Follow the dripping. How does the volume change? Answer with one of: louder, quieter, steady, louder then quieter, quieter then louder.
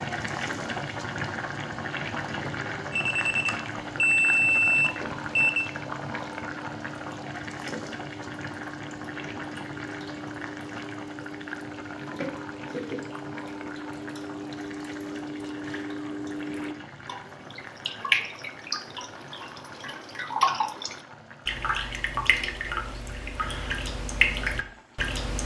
louder.